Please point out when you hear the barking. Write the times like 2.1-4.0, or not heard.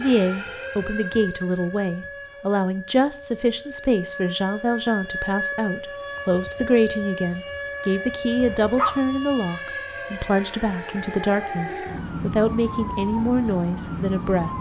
8.4-9.0.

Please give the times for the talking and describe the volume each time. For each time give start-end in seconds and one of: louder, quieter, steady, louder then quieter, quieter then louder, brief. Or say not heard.
0.0-14.5 steady.